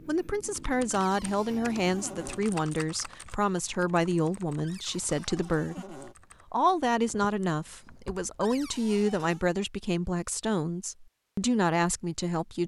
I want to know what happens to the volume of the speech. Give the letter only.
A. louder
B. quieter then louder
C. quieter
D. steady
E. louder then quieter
D.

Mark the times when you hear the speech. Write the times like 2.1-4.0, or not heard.
0.1-12.6.